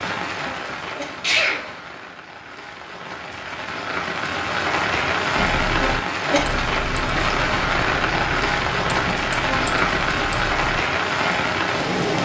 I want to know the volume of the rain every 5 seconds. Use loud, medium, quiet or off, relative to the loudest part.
medium, loud, loud.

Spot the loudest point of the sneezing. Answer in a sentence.
The loudest moment of the sneezing is at 1 second.